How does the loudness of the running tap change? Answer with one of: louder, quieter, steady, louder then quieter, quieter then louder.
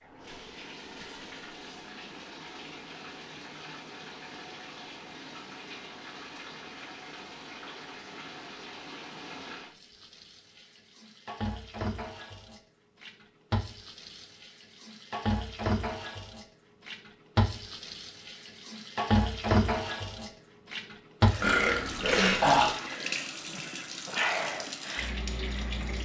louder.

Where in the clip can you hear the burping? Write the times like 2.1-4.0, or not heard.
21.4-22.7.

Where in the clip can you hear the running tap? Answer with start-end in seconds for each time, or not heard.
0.0-26.0.